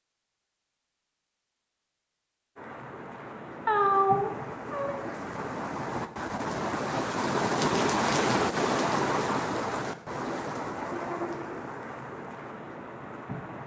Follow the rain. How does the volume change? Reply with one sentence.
The loudness of the rain goes up, then down.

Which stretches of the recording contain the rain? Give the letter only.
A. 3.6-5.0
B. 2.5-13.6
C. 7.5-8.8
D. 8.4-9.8
B.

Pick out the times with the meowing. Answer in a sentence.
The meowing can be heard from 3.6 to 5.0 s.